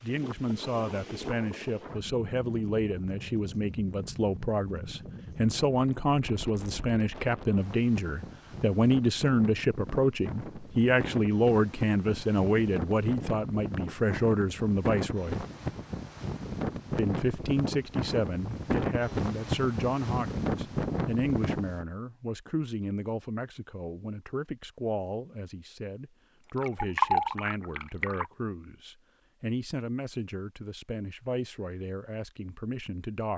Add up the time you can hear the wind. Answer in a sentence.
You can hear the wind for 22 seconds altogether.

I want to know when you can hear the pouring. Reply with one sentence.
The pouring can be heard from 26.4 to 28.3 s.